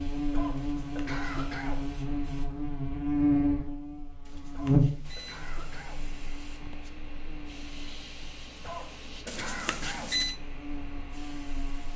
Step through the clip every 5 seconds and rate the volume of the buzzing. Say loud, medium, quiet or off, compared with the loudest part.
loud, quiet, quiet.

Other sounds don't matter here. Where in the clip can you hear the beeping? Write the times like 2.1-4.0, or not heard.
0.6-1.2, 4.2-5.4, 9.2-10.4.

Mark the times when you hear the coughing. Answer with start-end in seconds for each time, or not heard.
0.3-1.8, 4.5-6.0, 8.6-10.1.